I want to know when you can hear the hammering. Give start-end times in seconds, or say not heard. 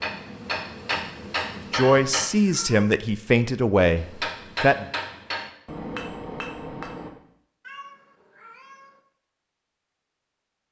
0.0-2.2, 4.0-7.1.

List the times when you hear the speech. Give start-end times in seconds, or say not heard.
1.6-4.8.